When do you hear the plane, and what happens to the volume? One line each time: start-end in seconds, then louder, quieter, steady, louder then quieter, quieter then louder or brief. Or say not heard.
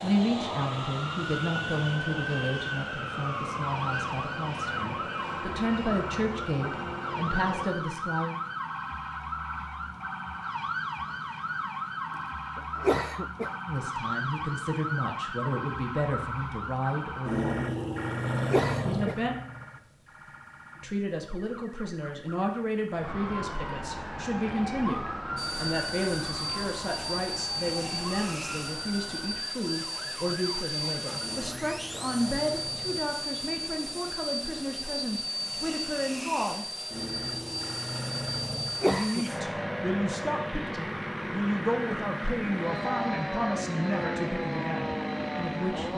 0.0-7.7 steady
25.4-45.9 steady.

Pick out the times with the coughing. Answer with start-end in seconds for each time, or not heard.
12.6-13.5, 18.4-19.1, 38.5-39.2.